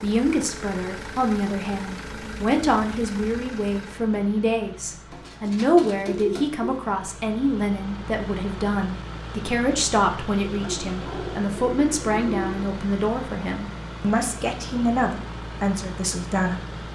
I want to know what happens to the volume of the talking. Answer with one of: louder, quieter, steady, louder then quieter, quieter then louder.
steady.